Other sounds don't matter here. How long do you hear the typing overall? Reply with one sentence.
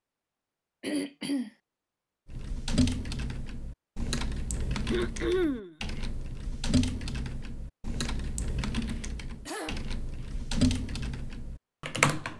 The typing can be heard for 10 seconds in total.